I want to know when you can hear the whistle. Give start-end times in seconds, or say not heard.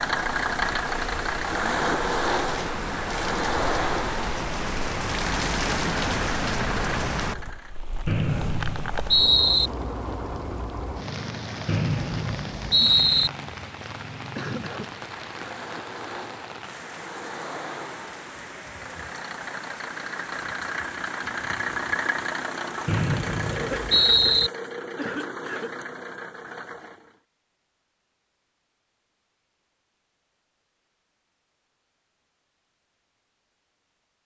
8.1-9.7, 11.7-13.3, 22.9-24.5.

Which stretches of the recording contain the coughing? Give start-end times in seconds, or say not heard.
14.3-14.9, 23.4-25.7.